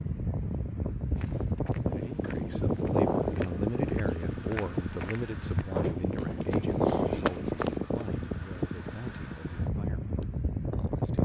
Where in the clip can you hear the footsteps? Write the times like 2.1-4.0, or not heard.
1.1-8.1.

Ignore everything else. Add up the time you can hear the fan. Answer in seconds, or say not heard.
11 s.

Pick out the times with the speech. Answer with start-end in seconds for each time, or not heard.
1.9-11.2.